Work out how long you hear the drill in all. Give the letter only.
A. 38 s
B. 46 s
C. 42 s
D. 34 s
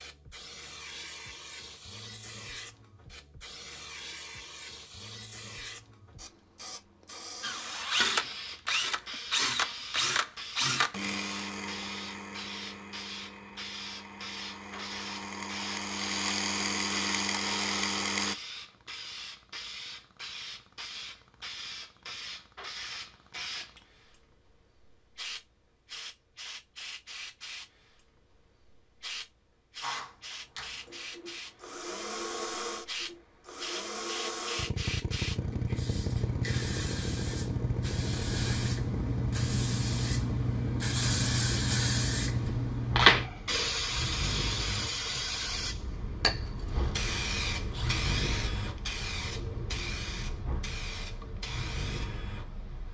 D.